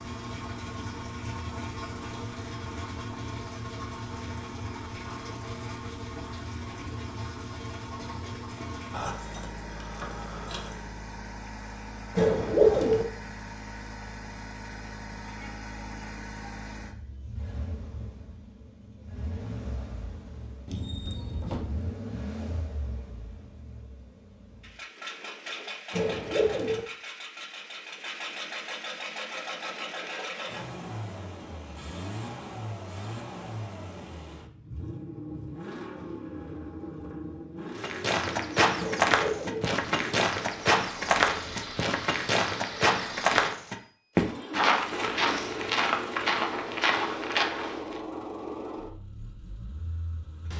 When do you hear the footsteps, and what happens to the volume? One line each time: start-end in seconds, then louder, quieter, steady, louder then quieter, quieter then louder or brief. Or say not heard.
37.8-48.0 steady.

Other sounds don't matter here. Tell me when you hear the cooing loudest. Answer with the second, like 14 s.
13 s.